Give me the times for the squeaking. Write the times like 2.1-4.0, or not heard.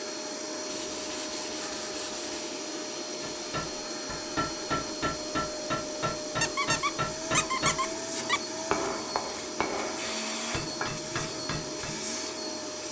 6.4-8.4.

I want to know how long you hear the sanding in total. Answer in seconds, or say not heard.
2 s.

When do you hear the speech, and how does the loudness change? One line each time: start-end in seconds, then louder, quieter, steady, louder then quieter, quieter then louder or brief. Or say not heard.
not heard.